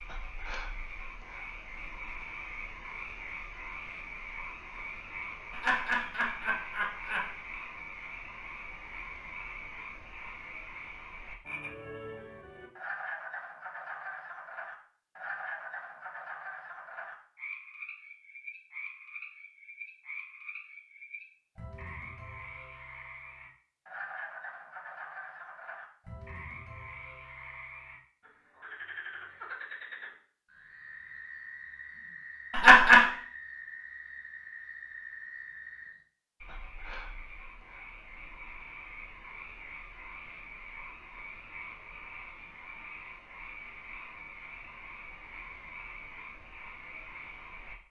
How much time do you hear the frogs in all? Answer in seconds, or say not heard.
48 s.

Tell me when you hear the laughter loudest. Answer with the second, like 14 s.
33 s.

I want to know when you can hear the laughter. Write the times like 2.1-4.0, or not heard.
5.5-7.3, 32.5-33.0.